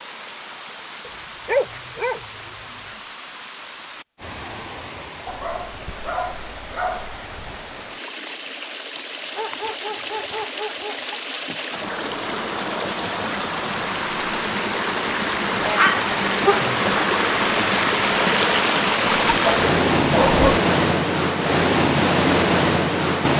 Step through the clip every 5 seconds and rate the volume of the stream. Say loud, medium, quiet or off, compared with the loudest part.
quiet, quiet, medium, loud, loud.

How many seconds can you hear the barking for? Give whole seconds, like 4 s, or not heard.
8 s.